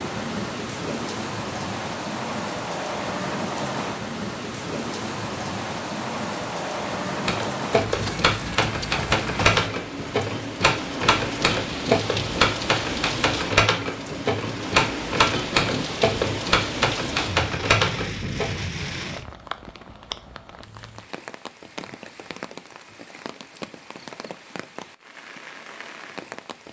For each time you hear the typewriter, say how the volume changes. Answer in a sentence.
You can hear the typewriter from 7.2 to 18.6 s, at a steady volume.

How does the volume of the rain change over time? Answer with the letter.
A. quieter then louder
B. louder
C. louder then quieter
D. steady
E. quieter
E.